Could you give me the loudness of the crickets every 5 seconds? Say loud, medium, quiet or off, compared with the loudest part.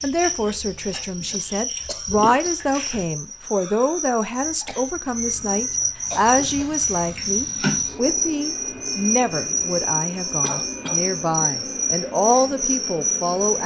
medium, loud, loud.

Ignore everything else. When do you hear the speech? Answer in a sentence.
The speech can be heard from 0.0 to 13.6 s.